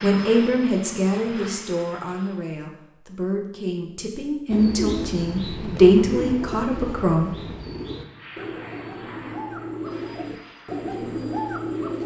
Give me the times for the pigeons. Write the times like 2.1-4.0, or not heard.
4.5-12.0.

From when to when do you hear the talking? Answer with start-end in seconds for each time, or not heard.
0.0-7.3.